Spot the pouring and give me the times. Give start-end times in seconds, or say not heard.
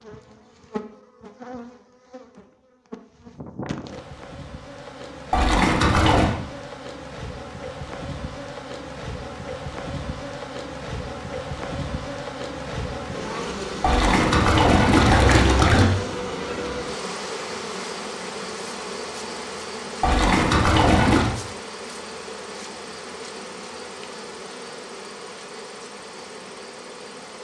5.3-6.3, 13.8-15.8, 20.0-21.4.